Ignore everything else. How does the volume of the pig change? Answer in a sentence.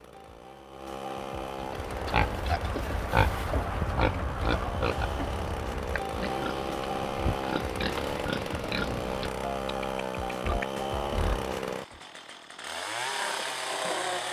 The volume of the pig goes down.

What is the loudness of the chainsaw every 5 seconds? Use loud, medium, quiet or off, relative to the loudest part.
medium, loud, loud.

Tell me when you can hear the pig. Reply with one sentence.
You can hear the pig from 1.6 to 12.0 s.